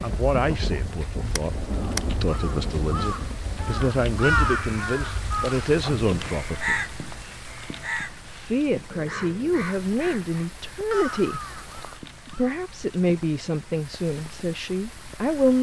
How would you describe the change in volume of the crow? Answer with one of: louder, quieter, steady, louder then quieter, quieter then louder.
louder then quieter.